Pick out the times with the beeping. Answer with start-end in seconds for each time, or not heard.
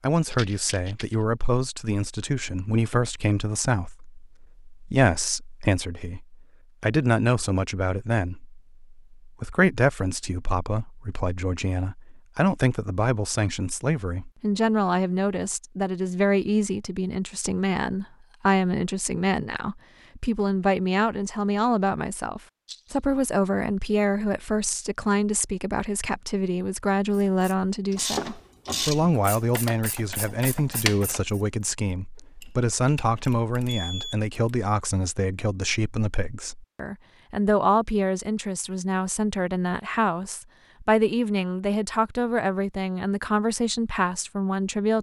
33.6-34.2.